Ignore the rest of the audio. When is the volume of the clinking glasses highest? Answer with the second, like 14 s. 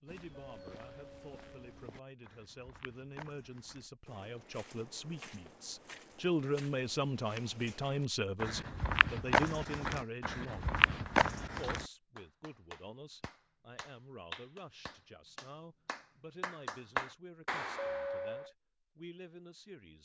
18 s.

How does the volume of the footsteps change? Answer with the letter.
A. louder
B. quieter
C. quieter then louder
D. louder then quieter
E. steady
A.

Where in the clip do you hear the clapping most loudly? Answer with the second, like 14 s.
17 s.